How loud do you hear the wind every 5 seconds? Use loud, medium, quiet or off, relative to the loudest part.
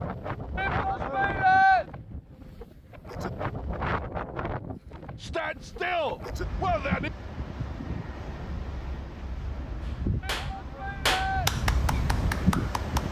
loud, medium, loud.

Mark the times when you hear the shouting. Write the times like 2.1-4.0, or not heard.
0.6-1.9, 5.2-7.1, 10.2-11.5.